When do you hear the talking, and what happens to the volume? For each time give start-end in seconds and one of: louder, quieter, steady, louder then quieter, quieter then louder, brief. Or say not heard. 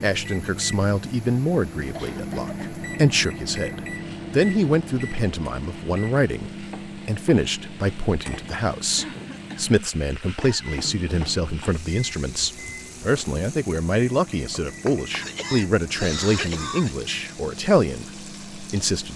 0.0-19.1 steady.